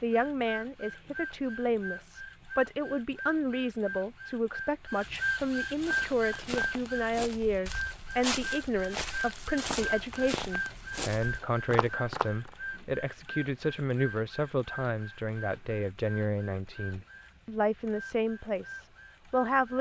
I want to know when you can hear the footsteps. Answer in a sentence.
The footsteps can be heard from 5.8 to 12.2 s.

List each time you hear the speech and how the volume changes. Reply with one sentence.
The speech can be heard from 0.0 to 19.7 s, at a steady volume.